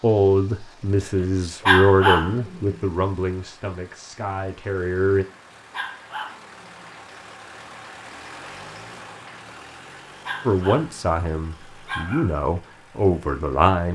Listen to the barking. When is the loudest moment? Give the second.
2 s.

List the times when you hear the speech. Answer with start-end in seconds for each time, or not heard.
0.0-5.2, 10.4-13.8.